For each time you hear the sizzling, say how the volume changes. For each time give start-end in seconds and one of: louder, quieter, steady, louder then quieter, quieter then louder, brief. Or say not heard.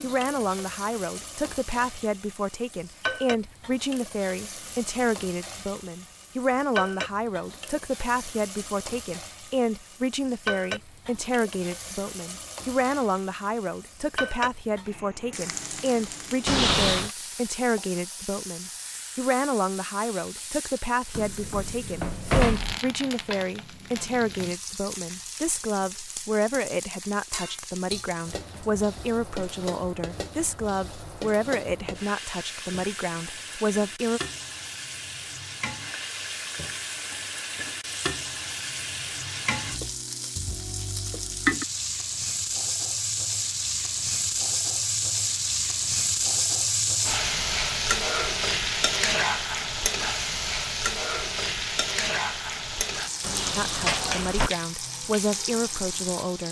0.0-56.4 louder.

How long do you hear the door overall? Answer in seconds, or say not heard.
4 s.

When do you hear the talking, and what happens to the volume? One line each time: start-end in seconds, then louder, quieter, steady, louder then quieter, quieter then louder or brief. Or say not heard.
0.0-34.2 steady
53.5-56.4 brief.